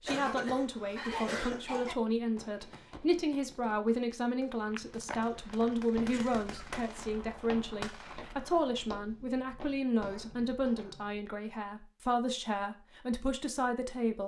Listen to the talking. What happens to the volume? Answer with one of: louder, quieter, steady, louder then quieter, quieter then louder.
steady.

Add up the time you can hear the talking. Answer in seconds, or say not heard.
14 s.